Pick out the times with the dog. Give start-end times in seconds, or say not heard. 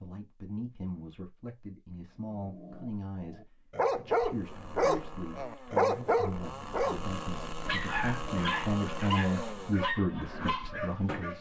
2.3-11.3.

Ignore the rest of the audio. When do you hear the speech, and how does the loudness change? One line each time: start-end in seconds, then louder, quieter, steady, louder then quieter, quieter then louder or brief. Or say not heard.
0.0-11.3 louder.